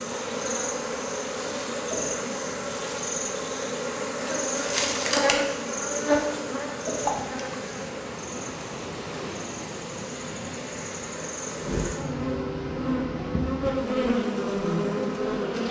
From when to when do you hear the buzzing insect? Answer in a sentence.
You can hear the buzzing insect from 0.0 to 15.6 s.